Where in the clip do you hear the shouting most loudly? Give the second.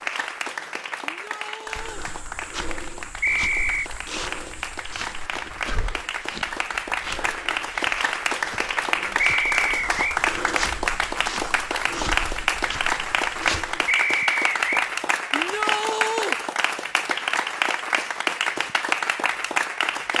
16 s.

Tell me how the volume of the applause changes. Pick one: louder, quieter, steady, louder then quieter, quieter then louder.
louder.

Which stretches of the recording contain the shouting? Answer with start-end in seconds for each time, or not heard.
1.1-2.1, 15.3-16.4.